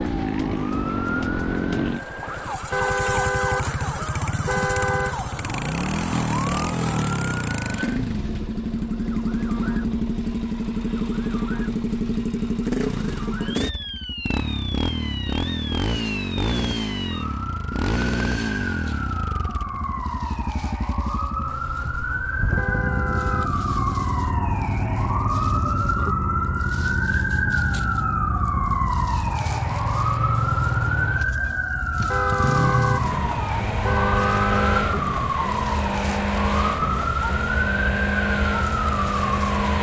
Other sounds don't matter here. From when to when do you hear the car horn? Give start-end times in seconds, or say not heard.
2.7-5.2, 22.6-23.6, 32.1-34.9.